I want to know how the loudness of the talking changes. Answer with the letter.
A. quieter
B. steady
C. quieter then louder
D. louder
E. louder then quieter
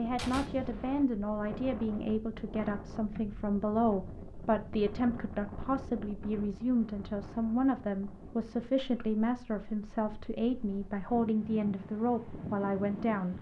B.